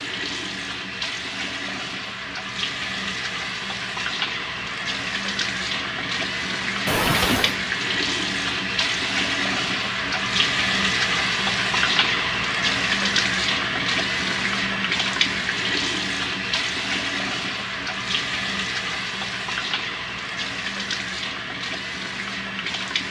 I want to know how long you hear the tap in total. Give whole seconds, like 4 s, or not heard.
23 s.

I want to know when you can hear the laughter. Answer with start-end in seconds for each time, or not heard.
6.8-7.5.